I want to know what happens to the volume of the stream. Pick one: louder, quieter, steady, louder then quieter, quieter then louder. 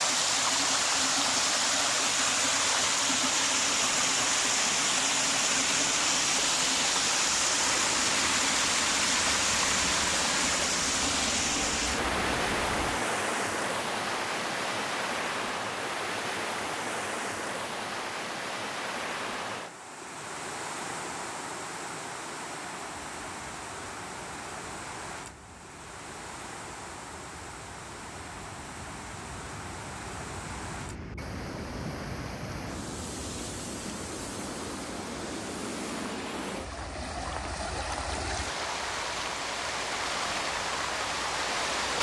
quieter then louder.